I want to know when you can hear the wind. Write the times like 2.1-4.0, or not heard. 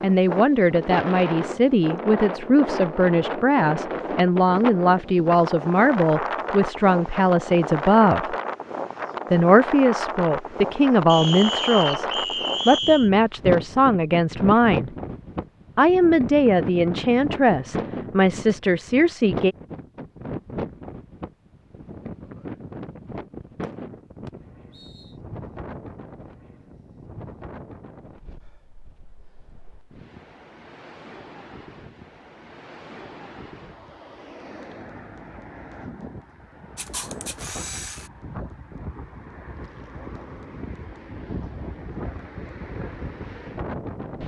0.0-44.2.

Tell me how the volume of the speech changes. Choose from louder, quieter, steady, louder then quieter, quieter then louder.
steady.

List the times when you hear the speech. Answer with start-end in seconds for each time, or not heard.
0.0-8.3, 9.3-14.9, 15.8-19.6.